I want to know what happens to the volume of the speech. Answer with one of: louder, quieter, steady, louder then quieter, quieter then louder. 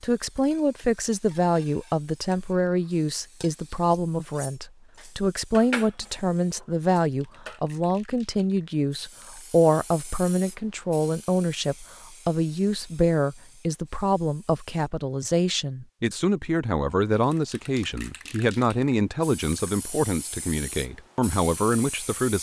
steady.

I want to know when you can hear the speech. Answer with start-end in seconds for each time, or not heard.
0.0-22.3.